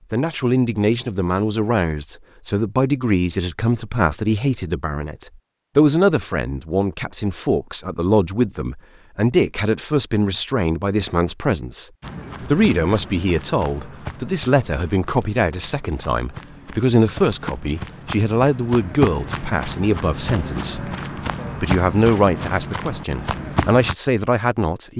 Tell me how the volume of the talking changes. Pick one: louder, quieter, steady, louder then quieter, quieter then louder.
steady.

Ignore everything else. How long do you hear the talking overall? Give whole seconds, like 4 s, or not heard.
24 s.